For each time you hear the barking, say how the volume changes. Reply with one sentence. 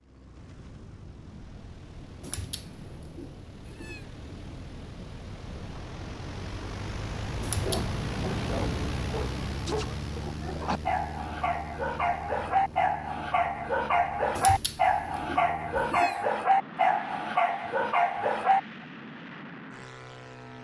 The barking can be heard from 7.5 to 18.6 s, getting louder.